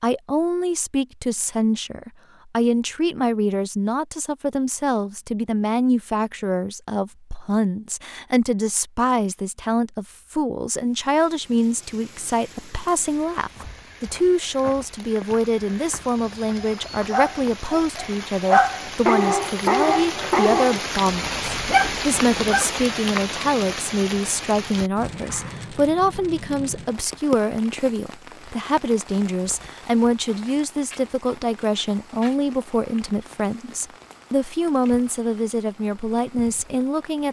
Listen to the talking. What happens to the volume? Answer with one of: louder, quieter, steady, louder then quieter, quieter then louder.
steady.